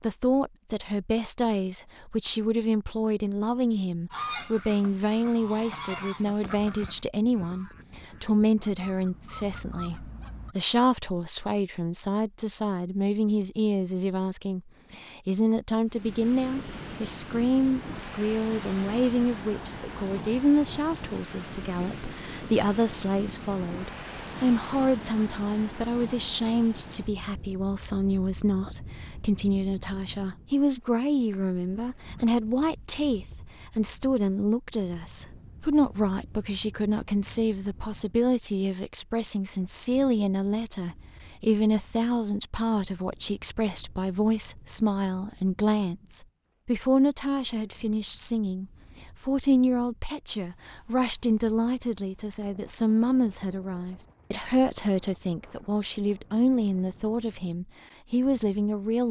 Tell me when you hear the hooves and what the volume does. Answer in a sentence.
You can't hear the hooves here.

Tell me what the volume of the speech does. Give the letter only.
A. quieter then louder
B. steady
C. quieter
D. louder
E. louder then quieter
B.